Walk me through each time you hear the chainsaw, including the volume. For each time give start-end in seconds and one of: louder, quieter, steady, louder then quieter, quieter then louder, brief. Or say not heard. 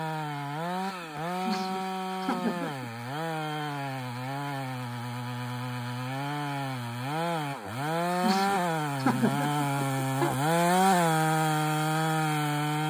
0.0-12.8 louder.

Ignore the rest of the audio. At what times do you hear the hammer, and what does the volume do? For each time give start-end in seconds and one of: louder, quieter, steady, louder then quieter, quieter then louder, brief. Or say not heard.
not heard.